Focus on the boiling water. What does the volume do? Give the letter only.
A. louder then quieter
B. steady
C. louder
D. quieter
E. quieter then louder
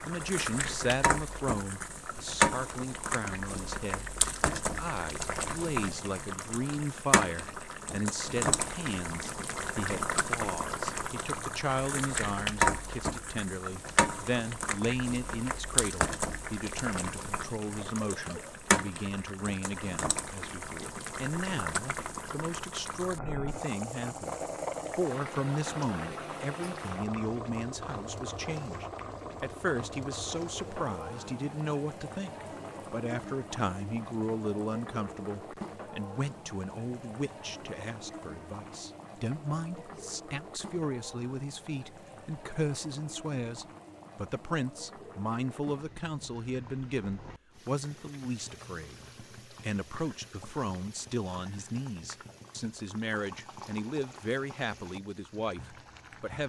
D.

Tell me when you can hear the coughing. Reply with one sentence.
You can hear the coughing from 17.6 to 18.6 s.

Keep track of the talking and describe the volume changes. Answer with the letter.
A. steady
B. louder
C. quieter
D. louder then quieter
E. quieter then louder
A.